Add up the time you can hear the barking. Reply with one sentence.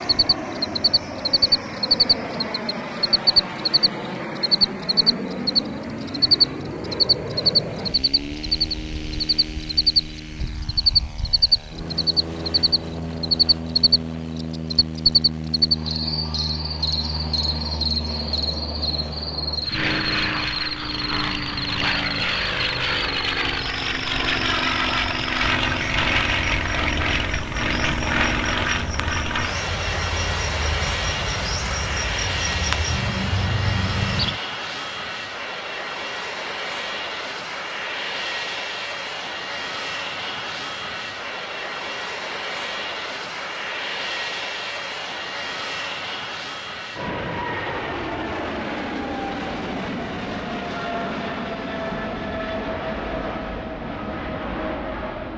You can't hear the barking here.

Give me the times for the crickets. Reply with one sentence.
The crickets can be heard from 0.0 to 34.4 s.